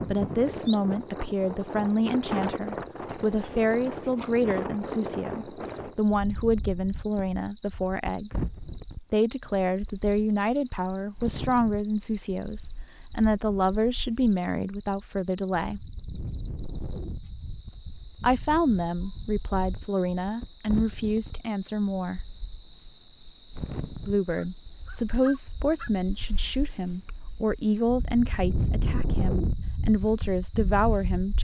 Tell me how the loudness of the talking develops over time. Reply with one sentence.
The loudness of the talking stays about the same.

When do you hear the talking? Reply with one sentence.
You can hear the talking from 0.0 to 8.3 s, from 9.1 to 15.8 s, from 18.2 to 22.2 s and from 24.1 to 31.4 s.